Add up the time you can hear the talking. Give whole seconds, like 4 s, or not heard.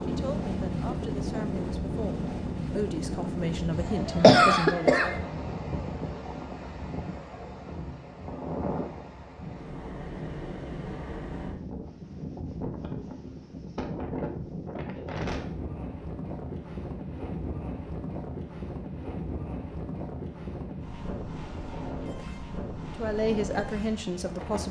7 s.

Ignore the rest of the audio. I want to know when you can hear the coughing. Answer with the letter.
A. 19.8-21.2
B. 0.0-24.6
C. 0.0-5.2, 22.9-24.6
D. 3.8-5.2
D.